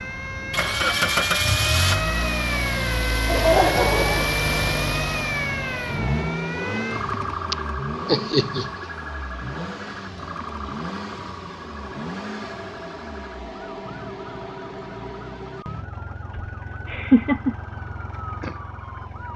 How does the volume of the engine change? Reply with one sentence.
The loudness of the engine goes down.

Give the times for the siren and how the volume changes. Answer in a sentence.
You can hear the siren from 0.0 to 19.3 s, getting quieter.